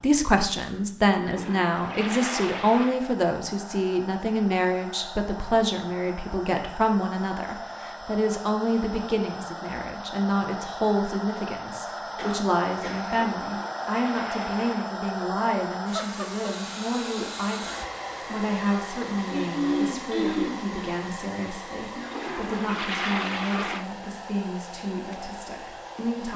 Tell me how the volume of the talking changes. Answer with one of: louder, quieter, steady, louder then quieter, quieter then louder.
quieter.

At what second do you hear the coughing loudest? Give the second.
20 s.